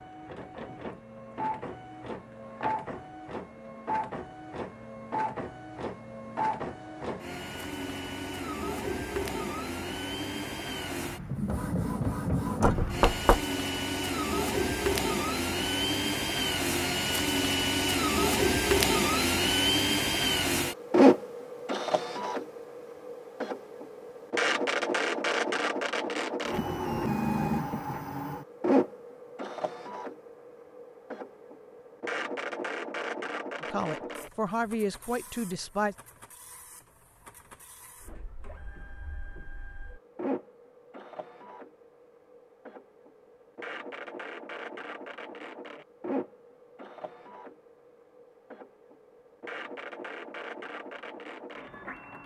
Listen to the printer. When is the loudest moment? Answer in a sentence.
The volume of the printer peaks at 21 seconds.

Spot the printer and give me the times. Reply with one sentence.
You can hear the printer from 0.0 to 52.2 s.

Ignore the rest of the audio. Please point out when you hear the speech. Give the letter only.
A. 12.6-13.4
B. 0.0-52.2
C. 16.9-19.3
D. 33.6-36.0
D.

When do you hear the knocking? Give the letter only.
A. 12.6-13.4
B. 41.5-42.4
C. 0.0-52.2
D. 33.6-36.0
A.